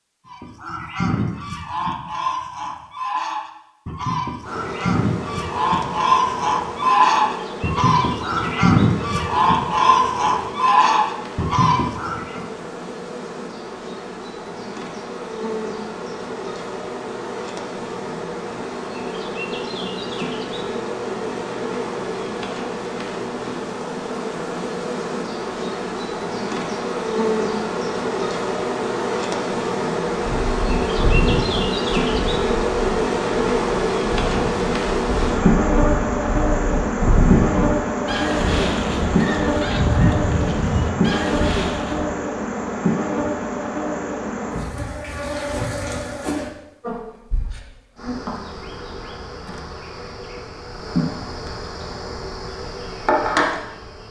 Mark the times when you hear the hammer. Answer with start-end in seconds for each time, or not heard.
not heard.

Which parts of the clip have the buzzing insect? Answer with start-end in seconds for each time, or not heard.
4.4-54.0.